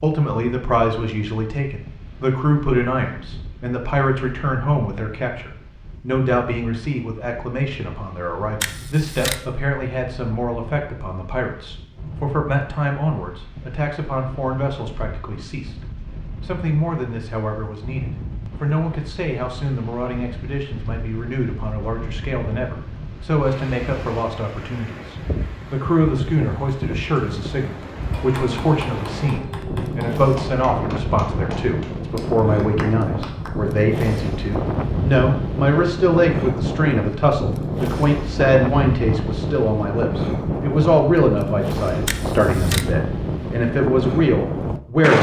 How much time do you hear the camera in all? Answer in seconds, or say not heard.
2 s.